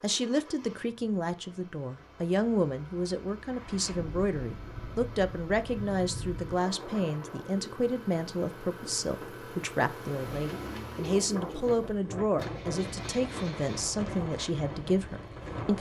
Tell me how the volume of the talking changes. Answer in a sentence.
The loudness of the talking stays about the same.